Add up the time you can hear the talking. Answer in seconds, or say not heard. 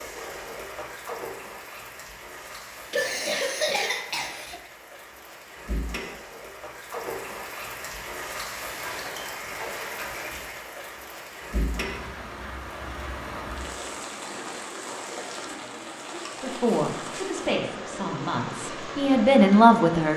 4 s.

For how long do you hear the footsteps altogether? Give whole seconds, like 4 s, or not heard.
not heard.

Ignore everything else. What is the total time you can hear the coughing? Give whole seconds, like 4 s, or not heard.
2 s.